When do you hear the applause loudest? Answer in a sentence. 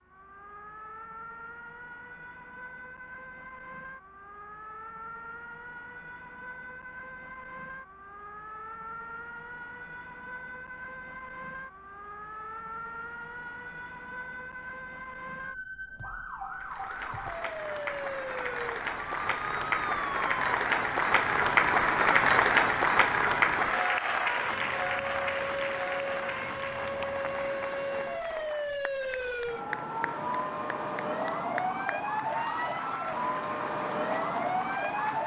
The loudest moment of the applause is at 22 seconds.